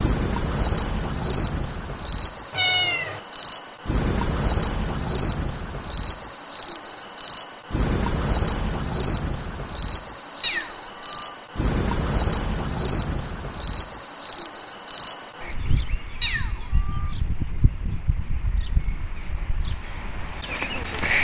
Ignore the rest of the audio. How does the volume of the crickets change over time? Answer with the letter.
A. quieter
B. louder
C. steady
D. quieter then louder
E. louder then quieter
A.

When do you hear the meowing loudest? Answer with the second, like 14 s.
3 s.